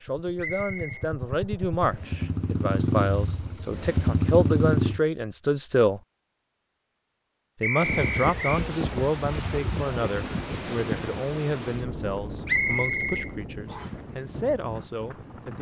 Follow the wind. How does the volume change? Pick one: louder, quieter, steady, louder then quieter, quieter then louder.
quieter.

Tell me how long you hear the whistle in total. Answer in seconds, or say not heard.
3 s.